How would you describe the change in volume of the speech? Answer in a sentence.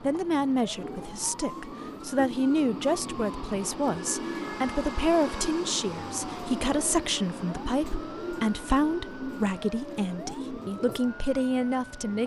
The loudness of the speech stays about the same.